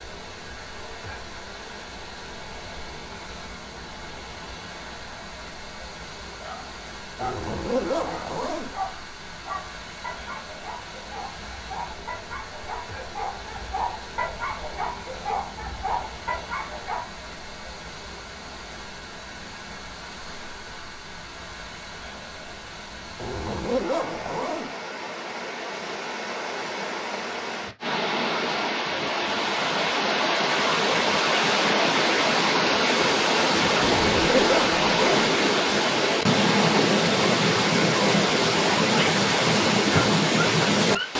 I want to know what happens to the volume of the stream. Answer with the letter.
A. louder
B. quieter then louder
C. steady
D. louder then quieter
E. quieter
A.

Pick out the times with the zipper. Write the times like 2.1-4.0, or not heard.
7.2-8.7, 23.1-24.7, 33.9-35.3.